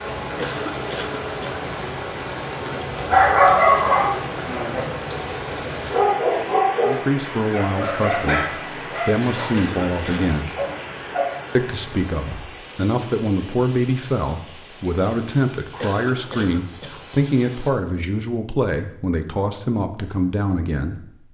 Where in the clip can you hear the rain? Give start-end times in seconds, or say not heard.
0.0-17.7.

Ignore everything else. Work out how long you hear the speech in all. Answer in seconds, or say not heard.
13 s.